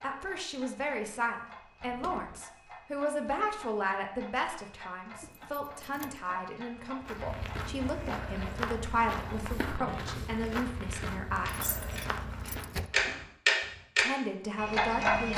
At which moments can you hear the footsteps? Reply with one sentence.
The footsteps can be heard from 7.0 to 13.9 s.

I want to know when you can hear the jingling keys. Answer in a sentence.
The jingling keys can be heard from 1.8 to 2.5 s, from 5.2 to 6.2 s and from 11.7 to 12.9 s.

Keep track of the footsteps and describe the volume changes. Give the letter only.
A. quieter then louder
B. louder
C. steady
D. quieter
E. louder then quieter
D.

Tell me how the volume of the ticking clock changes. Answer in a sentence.
The volume of the ticking clock goes up.